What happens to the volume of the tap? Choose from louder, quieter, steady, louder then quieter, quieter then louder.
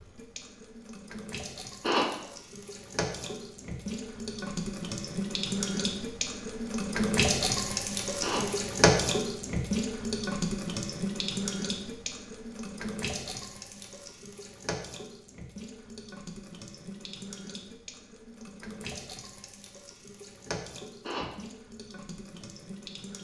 louder then quieter.